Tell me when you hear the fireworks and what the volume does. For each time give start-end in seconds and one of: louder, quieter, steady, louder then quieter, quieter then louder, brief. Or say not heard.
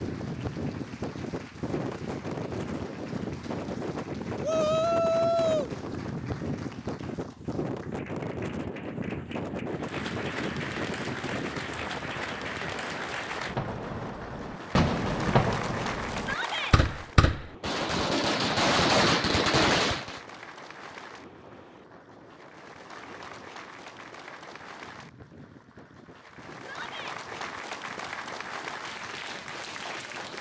13.3-20.2 louder.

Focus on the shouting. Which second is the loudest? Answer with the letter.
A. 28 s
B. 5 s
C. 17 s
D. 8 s
B.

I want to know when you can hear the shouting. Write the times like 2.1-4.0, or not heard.
4.4-5.7, 16.1-16.8, 26.6-27.2.